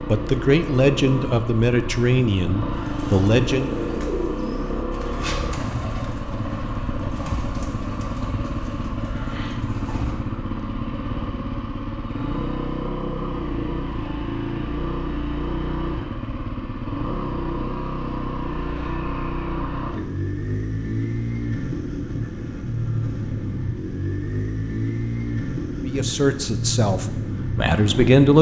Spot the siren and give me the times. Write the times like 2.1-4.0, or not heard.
not heard.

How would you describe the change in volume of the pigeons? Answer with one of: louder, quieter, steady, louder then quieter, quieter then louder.
quieter.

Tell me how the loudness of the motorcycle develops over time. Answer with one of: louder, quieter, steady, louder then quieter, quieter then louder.
steady.